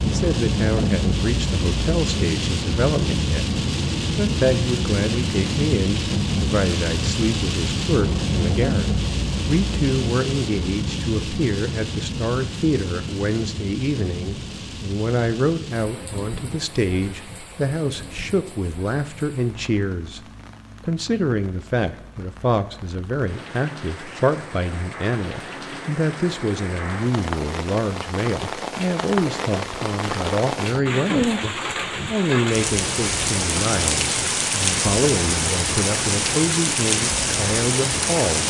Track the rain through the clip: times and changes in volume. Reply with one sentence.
The rain can be heard from 0.0 to 38.4 s, getting quieter then louder.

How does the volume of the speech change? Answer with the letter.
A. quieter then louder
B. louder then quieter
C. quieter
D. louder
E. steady
E.